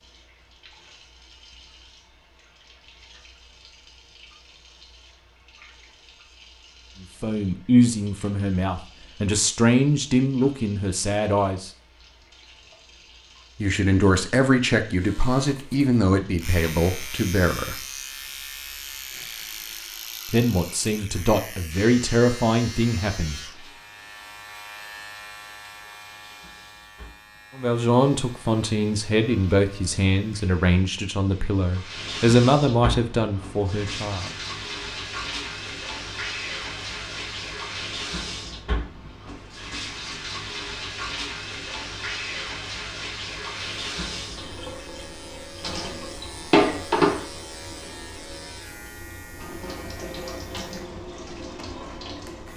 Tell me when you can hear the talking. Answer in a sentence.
You can hear the talking from 7.0 to 11.7 s, from 13.6 to 17.8 s, from 20.2 to 23.4 s and from 27.6 to 34.3 s.